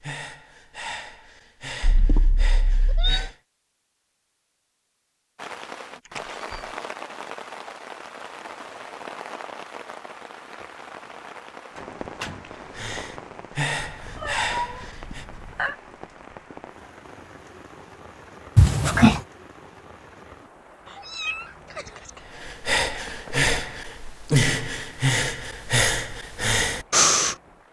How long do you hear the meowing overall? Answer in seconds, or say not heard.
5 s.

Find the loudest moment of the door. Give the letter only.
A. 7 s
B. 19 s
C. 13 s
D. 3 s
B.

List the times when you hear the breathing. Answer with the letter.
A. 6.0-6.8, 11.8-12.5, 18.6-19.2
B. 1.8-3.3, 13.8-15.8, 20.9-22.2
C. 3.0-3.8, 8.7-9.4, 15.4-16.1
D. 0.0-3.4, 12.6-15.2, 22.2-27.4
D.